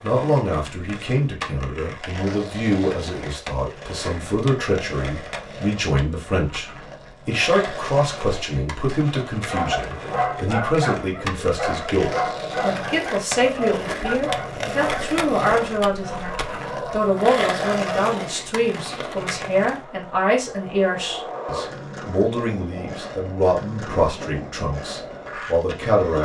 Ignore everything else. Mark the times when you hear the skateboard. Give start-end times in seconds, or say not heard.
0.0-26.2.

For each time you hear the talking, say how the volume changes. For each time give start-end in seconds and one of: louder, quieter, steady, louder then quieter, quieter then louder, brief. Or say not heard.
0.0-6.7 steady
7.2-26.2 steady.